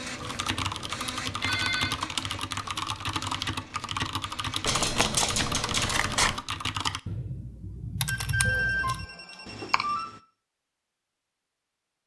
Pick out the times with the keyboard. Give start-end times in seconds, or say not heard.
0.2-10.2.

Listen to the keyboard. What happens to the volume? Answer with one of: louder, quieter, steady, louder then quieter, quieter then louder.
steady.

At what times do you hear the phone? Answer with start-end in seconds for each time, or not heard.
1.4-1.9, 4.7-6.0, 8.1-10.1.